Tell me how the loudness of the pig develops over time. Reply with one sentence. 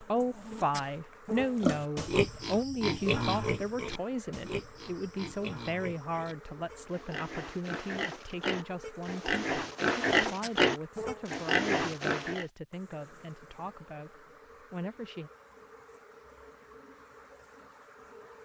The volume of the pig goes down, then up.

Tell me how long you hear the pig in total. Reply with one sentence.
You can hear the pig for 11 seconds altogether.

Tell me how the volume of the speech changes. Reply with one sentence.
The loudness of the speech goes down.